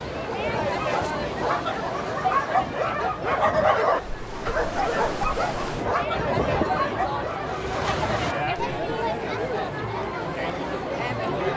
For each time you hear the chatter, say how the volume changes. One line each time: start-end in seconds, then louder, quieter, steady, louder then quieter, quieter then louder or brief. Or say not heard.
0.0-11.5 quieter then louder.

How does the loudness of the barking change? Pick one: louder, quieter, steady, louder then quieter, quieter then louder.
louder then quieter.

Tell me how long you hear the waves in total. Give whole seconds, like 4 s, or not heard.
8 s.